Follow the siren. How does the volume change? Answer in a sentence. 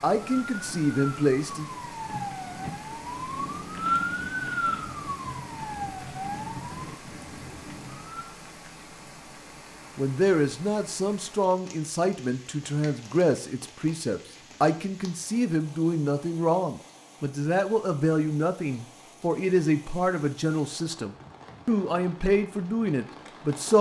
The volume of the siren goes up, then down.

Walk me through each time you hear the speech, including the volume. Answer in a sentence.
The speech can be heard briefly from 0.0 to 1.6 s; and from 9.9 to 23.7 s, at a steady volume.